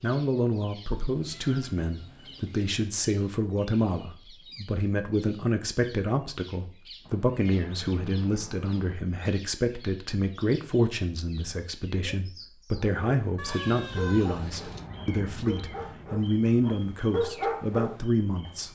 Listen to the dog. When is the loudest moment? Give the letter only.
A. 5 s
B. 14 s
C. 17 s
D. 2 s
C.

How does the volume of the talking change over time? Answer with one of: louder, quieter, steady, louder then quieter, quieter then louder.
steady.